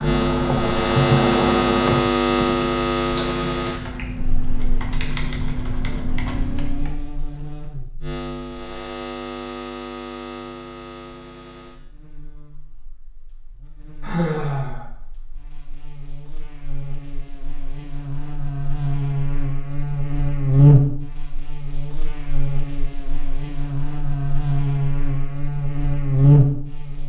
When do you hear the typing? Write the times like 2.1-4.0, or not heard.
0.0-7.0.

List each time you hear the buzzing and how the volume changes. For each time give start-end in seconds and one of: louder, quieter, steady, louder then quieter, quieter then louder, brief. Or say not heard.
0.0-27.0 quieter then louder.